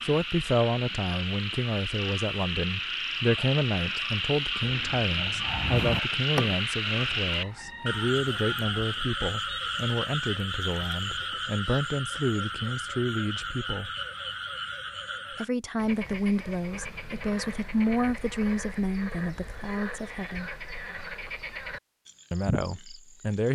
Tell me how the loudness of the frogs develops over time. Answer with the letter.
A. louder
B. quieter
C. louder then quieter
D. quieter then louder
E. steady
B.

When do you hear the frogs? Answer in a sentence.
The frogs can be heard from 0.0 to 23.5 s.